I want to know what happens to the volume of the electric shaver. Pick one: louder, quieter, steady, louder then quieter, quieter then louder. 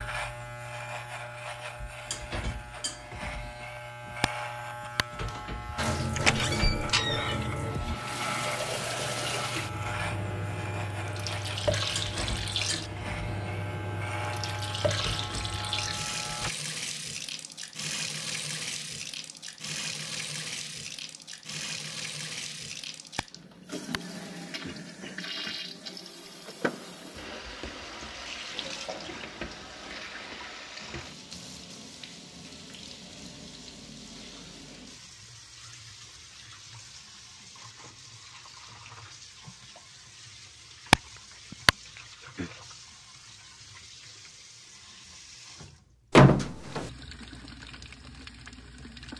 steady.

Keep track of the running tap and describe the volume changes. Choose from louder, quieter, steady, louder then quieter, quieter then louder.
quieter.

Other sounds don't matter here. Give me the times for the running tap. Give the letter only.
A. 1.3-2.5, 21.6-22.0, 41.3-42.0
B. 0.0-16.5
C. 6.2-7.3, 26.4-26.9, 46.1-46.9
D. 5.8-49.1
D.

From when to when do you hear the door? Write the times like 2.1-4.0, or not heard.
6.2-7.3, 26.4-26.9, 46.1-46.9.